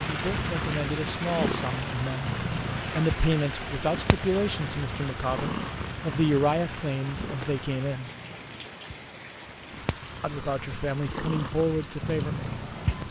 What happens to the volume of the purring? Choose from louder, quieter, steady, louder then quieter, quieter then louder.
quieter then louder.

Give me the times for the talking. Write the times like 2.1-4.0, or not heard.
0.1-8.1, 10.2-13.0.